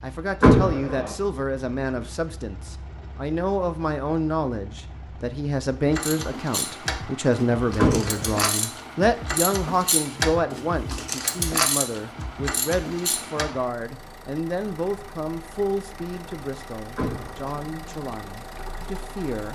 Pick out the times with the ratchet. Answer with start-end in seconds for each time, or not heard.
5.8-13.6.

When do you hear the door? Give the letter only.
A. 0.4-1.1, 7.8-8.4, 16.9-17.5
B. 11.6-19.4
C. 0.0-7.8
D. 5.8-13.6
A.